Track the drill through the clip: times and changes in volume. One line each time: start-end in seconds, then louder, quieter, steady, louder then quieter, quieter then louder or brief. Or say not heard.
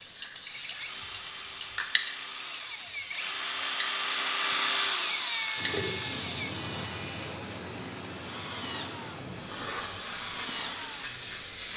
0.0-11.7 louder then quieter.